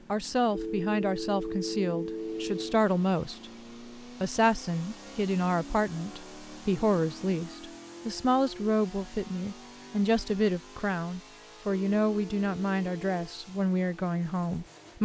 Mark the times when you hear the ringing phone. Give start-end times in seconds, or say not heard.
0.5-2.9, 11.8-13.3.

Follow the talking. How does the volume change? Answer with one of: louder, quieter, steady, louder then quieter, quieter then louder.
steady.